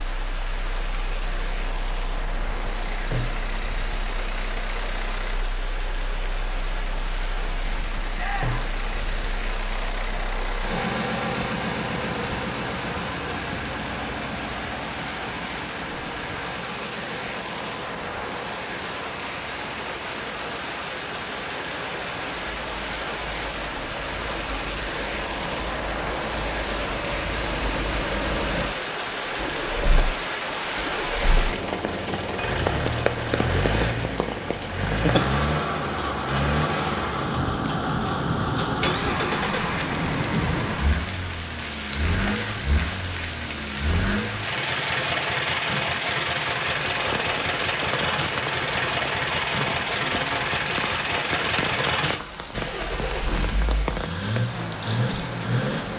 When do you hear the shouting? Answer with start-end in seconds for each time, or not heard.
8.2-8.7.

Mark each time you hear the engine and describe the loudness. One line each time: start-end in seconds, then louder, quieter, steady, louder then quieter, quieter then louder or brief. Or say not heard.
0.0-55.9 louder.